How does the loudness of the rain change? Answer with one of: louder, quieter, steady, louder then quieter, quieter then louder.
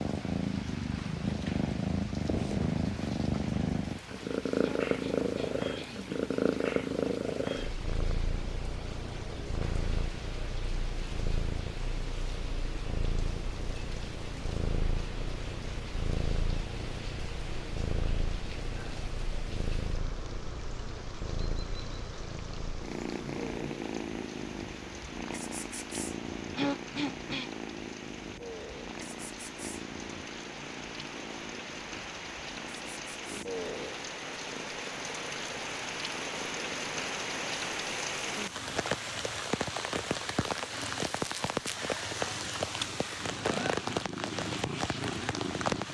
louder.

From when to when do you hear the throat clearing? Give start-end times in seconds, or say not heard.
4.6-6.0, 26.6-27.5.